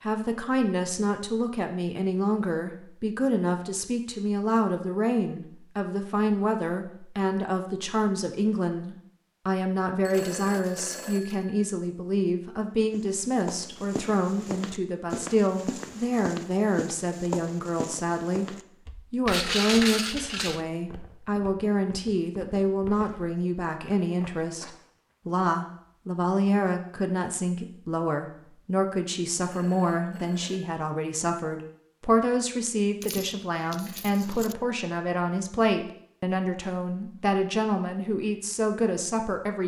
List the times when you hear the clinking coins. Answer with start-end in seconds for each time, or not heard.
10.1-11.4, 19.2-20.6, 33.0-34.5.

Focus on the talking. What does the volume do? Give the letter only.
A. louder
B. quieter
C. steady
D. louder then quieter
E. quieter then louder
C.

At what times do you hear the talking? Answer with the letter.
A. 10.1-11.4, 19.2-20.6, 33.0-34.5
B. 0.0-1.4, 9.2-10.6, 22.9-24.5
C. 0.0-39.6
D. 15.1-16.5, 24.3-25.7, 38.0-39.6
C.